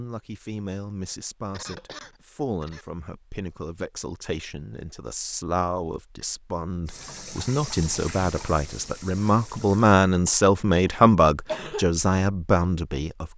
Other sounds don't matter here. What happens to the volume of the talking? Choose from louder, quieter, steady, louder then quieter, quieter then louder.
louder.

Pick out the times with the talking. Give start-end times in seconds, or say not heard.
0.0-13.3.